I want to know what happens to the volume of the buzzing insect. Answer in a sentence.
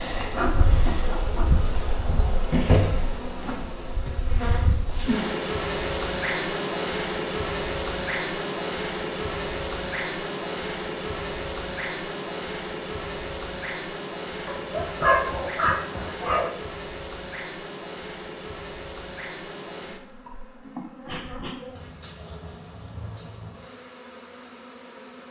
The volume of the buzzing insect goes down.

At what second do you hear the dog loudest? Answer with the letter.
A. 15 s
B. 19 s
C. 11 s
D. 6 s
A.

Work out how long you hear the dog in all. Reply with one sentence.
You can hear the dog for 2 seconds altogether.